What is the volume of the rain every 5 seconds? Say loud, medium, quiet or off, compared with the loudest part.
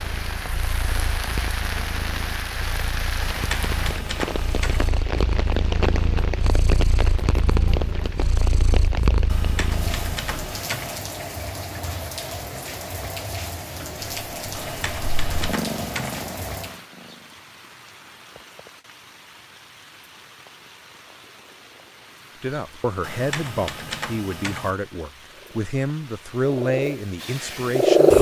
loud, loud, loud, medium, quiet, quiet.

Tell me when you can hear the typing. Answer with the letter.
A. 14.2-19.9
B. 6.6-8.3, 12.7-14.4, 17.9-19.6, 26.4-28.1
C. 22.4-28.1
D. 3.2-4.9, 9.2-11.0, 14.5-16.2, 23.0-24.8
D.